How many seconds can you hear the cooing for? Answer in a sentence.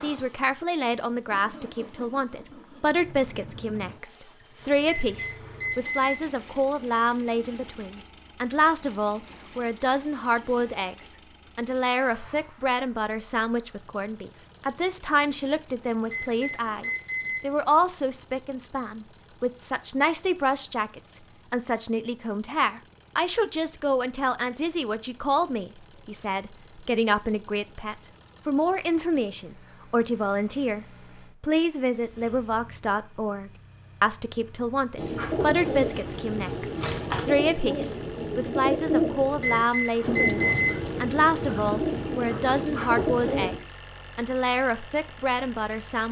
The cooing can be heard for 9 seconds in total.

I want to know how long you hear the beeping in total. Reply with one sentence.
You can hear the beeping for 4 seconds altogether.